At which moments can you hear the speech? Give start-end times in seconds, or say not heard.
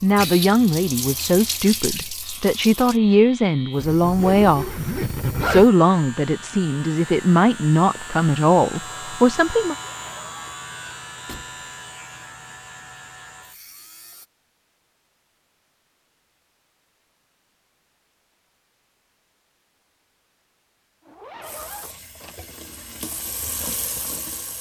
0.0-9.8.